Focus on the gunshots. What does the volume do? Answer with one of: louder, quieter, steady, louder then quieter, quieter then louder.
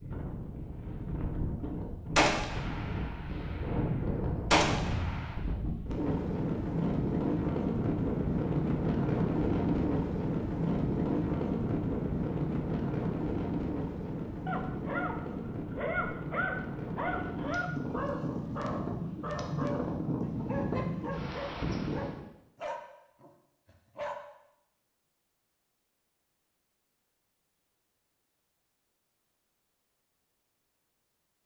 quieter then louder.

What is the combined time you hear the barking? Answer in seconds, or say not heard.
10 s.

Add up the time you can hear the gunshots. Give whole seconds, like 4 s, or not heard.
4 s.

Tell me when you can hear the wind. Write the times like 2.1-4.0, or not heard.
0.0-22.2.